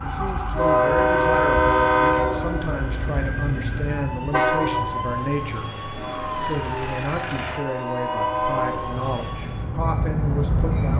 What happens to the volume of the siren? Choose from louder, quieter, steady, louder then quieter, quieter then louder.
steady.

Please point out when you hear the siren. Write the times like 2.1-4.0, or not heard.
0.0-9.8.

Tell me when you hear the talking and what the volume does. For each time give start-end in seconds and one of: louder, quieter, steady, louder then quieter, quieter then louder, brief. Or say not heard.
0.0-10.9 steady.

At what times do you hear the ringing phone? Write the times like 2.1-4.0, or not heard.
not heard.